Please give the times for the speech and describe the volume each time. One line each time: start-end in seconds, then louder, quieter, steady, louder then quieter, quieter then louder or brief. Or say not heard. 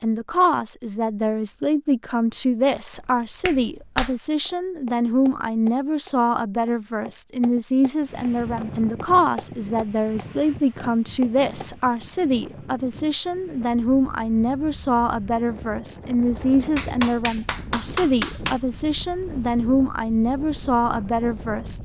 0.0-21.8 steady.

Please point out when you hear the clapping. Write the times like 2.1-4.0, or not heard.
3.4-4.2, 16.8-18.6.